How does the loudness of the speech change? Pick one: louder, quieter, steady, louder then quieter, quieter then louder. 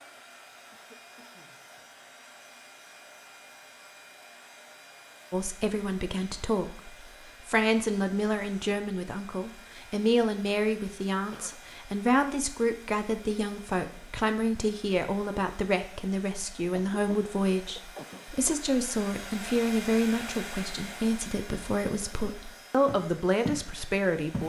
steady.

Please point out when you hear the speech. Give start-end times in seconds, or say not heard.
5.3-24.4.